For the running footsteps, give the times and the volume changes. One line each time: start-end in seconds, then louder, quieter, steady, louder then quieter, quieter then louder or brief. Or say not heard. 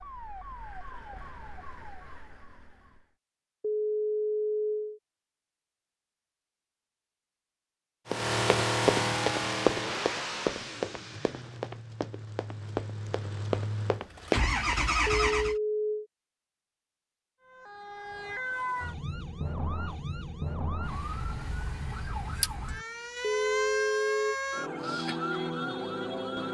8.1-14.8 quieter then louder.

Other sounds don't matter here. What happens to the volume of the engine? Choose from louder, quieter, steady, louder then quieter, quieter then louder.
quieter then louder.